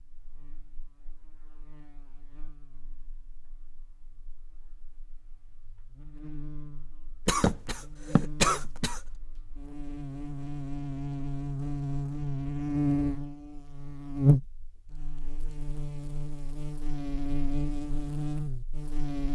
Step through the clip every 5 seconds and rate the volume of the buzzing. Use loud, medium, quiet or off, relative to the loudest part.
quiet, quiet, loud, medium.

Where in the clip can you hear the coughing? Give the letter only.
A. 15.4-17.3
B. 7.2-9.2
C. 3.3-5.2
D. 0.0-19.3
B.